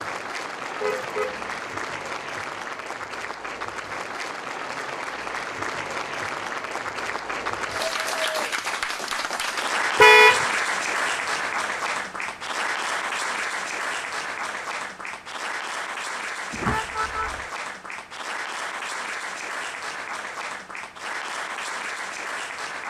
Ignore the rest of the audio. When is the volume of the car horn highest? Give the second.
10 s.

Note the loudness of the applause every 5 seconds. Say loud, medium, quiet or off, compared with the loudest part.
medium, loud, loud, medium, medium.